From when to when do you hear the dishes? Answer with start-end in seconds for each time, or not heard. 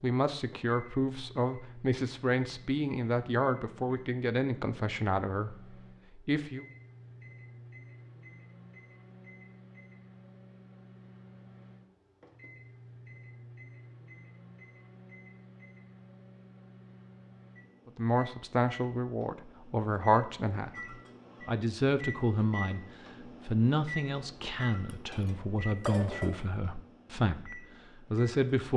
24.9-26.4.